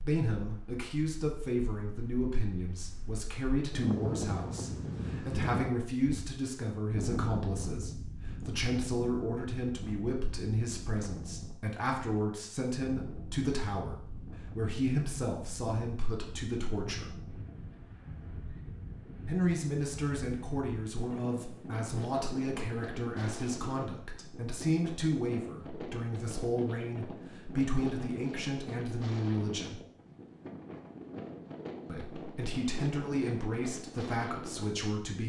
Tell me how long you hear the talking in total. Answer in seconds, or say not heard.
31 s.